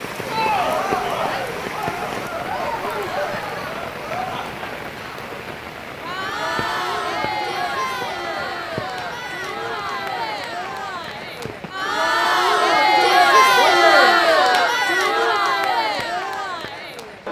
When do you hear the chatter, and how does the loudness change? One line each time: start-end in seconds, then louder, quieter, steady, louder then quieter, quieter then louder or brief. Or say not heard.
0.1-17.2 louder.